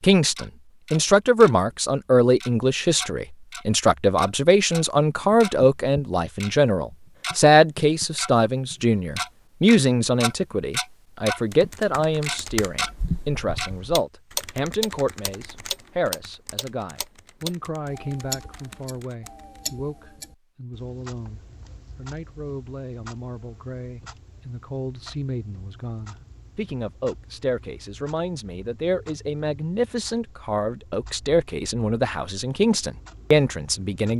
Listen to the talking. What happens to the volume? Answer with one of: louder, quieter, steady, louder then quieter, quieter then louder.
quieter then louder.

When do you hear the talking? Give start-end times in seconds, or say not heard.
0.0-34.1.